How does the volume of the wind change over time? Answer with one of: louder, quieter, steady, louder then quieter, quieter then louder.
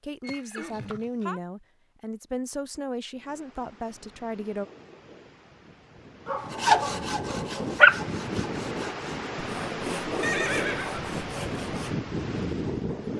louder.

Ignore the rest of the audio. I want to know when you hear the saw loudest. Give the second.
7 s.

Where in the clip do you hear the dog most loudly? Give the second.
8 s.